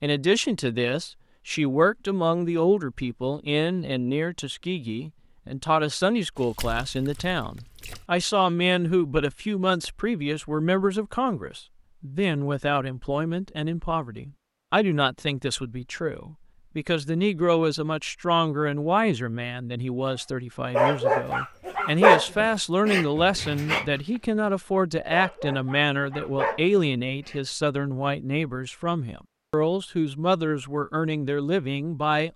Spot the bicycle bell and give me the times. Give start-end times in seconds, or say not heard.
not heard.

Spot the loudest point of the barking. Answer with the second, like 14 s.
22 s.